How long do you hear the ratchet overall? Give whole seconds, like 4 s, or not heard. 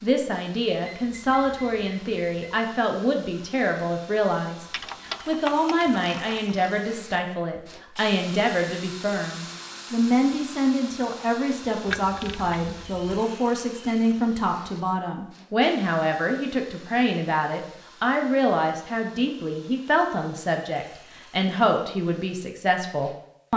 3 s.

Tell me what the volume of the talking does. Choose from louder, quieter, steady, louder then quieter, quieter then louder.
steady.